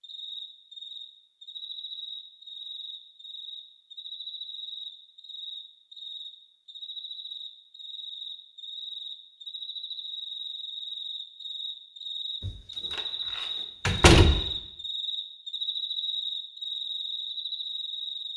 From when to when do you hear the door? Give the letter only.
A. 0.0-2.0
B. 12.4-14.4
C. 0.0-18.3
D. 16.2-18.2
B.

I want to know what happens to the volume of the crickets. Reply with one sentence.
The loudness of the crickets goes up.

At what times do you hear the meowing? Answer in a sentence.
You can't hear the meowing here.